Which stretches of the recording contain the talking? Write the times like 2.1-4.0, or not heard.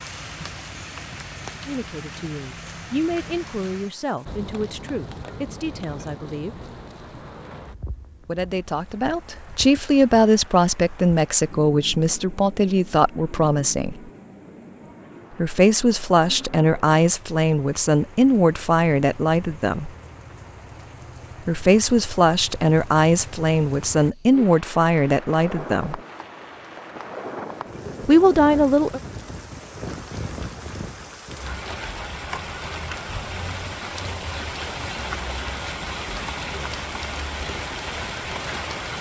1.6-6.5, 8.2-14.0, 15.3-19.9, 21.4-26.0, 28.1-29.0.